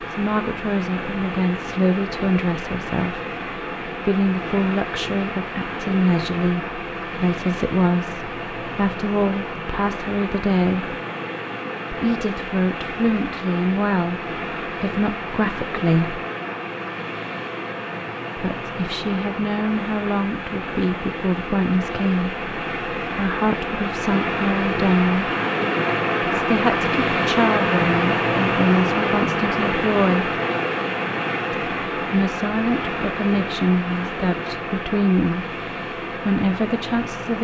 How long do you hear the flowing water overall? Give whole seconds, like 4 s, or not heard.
37 s.